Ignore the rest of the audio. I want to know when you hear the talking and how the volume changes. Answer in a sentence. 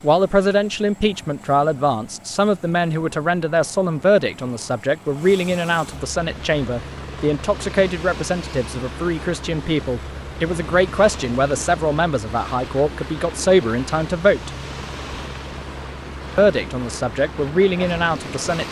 You can hear the talking from 0.0 to 14.5 s, at a steady volume; and briefly from 16.4 to 18.6 s.